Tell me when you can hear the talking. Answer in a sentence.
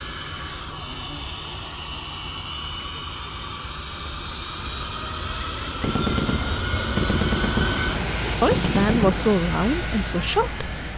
You can hear the talking from 8.4 to 10.7 s.